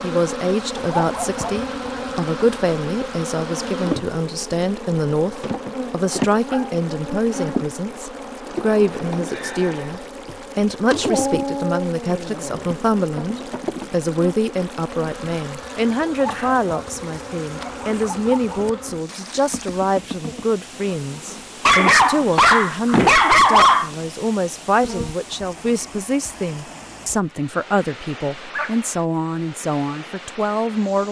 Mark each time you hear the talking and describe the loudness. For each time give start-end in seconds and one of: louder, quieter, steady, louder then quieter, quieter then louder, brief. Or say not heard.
0.0-31.0 steady.